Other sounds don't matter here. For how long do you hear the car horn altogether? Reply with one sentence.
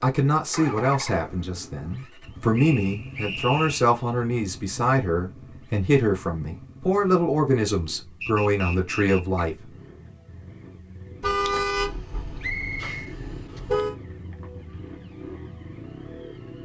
The car horn can be heard for 3 seconds in total.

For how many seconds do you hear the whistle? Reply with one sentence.
The whistle can be heard for 3 seconds in total.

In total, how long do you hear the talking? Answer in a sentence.
You can hear the talking for 10 seconds altogether.